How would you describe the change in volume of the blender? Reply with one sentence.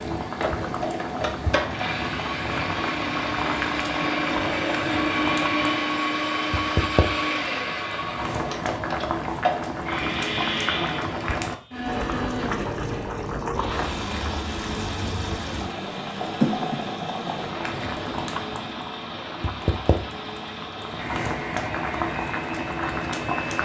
The loudness of the blender goes down.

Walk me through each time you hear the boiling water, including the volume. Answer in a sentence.
The boiling water can be heard from 0.0 to 23.5 s, at a steady volume.